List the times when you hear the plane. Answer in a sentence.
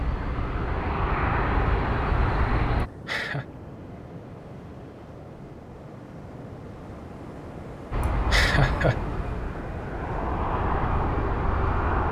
The plane can be heard from 0.0 to 2.9 s and from 7.9 to 12.0 s.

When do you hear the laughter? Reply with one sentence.
The laughter can be heard from 3.0 to 3.5 s and from 8.0 to 8.9 s.